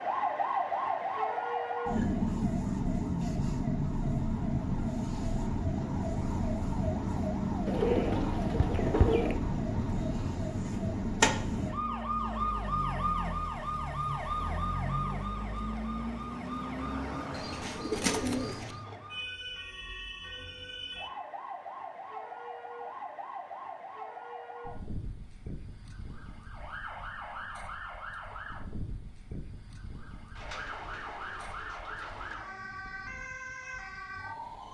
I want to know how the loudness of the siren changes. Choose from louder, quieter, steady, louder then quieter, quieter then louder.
quieter.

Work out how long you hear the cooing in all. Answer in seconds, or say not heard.
5 s.